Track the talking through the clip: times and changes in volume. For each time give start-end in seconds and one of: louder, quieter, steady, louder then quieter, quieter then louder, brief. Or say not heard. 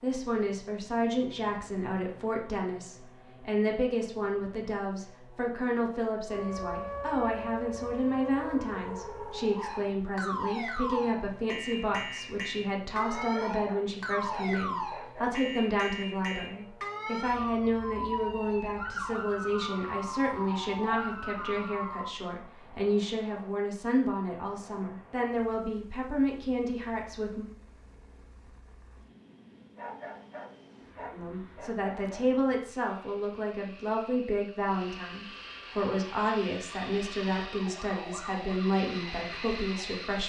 0.0-27.4 steady
31.1-40.2 steady.